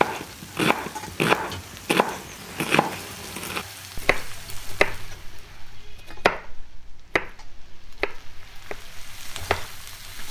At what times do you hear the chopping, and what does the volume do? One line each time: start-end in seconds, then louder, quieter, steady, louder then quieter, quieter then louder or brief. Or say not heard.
0.0-10.1 quieter.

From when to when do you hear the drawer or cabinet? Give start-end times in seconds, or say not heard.
not heard.